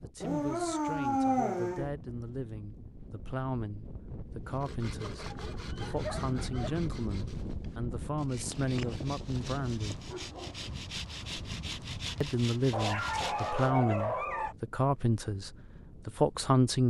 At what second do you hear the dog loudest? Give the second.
1 s.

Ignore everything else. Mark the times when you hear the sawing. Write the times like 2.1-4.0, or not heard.
4.5-13.7.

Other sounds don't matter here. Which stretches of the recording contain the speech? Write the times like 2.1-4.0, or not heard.
0.0-10.1, 12.2-16.8.